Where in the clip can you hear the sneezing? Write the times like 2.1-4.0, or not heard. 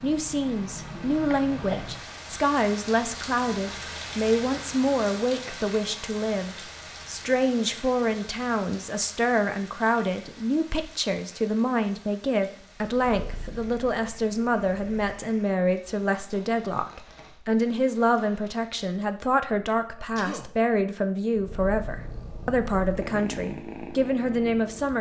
1.3-1.9, 19.9-20.4.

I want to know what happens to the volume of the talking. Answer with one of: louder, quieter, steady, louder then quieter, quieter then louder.
steady.